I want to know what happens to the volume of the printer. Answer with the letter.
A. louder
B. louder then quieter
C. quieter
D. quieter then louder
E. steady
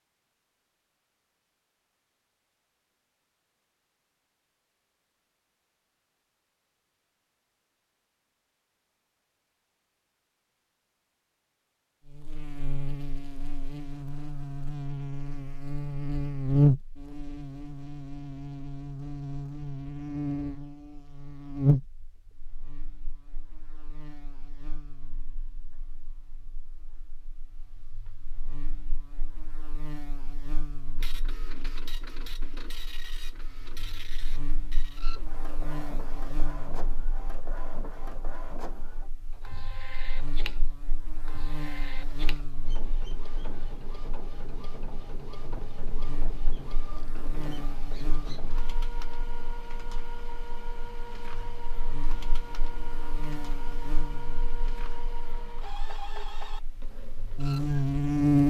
E.